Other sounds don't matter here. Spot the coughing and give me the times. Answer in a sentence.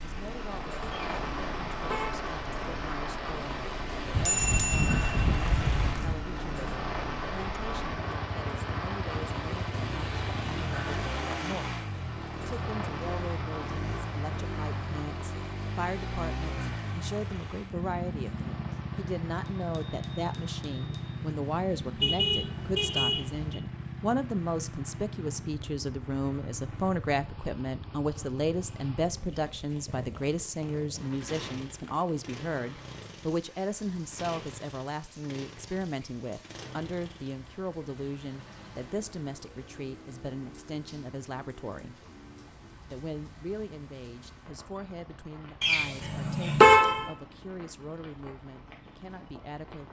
The coughing can't be heard in this clip.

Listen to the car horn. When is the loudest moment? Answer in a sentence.
The volume of the car horn peaks at 47 seconds.